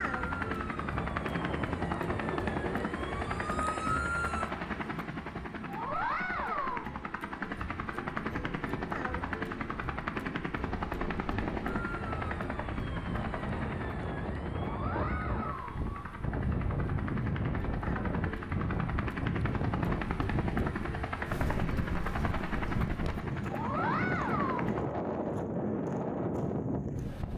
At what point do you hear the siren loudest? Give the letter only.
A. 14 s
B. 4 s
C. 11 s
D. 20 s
B.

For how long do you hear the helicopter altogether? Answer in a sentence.
You can hear the helicopter for 25 seconds altogether.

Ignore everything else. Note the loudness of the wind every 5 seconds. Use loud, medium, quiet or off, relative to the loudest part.
medium, quiet, medium, loud, loud, loud.